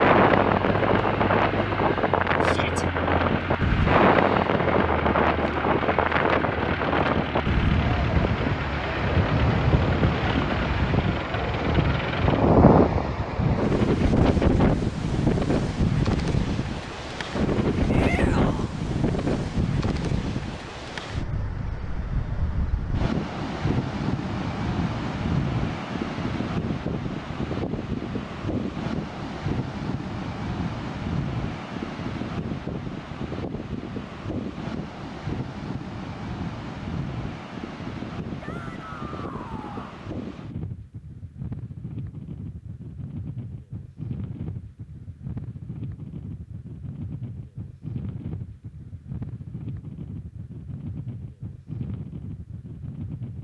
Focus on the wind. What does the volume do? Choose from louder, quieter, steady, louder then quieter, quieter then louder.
quieter.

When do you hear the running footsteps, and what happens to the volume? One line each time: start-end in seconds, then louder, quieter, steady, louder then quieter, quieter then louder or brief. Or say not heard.
not heard.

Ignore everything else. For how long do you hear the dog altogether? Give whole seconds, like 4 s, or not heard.
not heard.